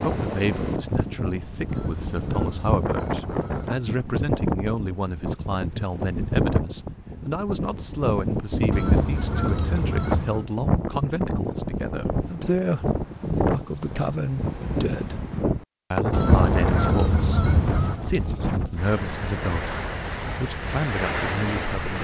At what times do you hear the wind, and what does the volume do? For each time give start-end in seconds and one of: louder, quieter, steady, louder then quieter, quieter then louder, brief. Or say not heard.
0.0-21.9 steady.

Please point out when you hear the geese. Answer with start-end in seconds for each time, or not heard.
1.6-3.7, 8.7-10.4, 16.1-18.0.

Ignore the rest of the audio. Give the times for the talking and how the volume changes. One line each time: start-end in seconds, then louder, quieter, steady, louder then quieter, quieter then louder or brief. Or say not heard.
0.0-15.2 steady
15.9-21.9 steady.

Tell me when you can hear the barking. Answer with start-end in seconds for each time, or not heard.
not heard.